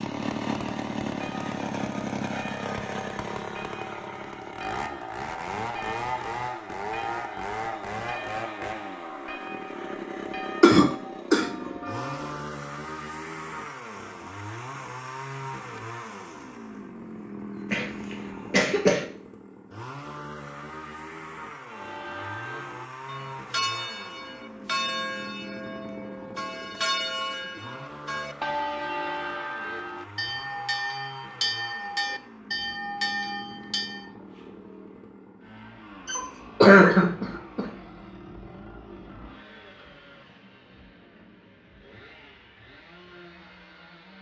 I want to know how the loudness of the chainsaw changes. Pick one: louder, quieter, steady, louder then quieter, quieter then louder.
quieter.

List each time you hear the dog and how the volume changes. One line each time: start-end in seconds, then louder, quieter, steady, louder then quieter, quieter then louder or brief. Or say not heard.
not heard.